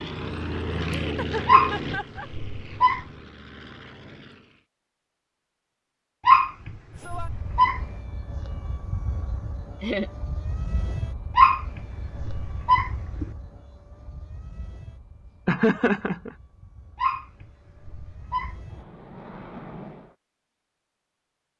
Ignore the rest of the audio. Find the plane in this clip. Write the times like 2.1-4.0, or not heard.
0.0-4.7, 7.0-20.1.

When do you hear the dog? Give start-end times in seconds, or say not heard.
1.4-3.0, 6.2-7.8, 11.3-13.3, 16.9-18.8.